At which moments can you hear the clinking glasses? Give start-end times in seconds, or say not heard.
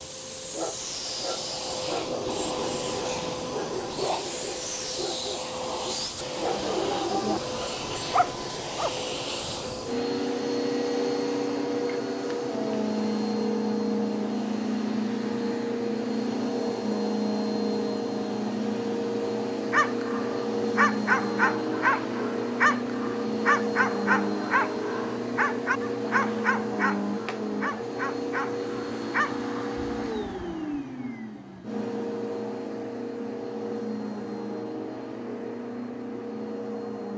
not heard.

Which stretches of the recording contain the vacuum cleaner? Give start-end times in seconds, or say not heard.
0.0-37.1.